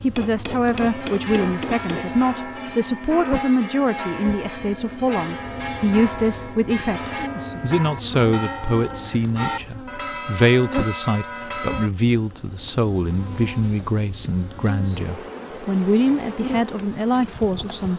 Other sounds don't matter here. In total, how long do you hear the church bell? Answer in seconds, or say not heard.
11 s.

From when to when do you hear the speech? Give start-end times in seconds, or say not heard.
0.0-17.9.